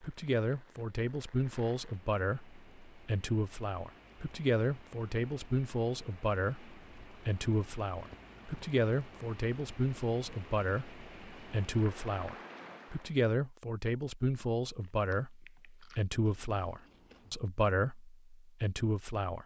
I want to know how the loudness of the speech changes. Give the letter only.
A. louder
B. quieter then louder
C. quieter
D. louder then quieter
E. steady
E.